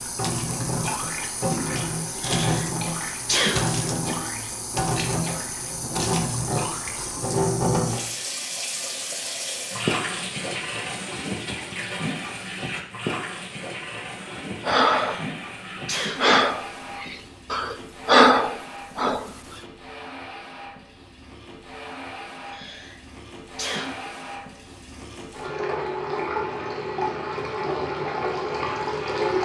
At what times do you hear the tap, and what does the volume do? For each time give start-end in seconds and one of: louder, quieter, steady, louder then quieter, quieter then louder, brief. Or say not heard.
0.0-29.3 quieter then louder.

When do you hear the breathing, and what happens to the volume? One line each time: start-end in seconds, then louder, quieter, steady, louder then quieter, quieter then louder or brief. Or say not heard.
14.2-19.3 quieter then louder.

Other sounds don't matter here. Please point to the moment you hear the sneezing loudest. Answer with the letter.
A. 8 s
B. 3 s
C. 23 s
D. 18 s
B.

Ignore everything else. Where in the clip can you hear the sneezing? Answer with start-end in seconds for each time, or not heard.
2.1-3.6, 14.9-16.4, 22.4-24.1.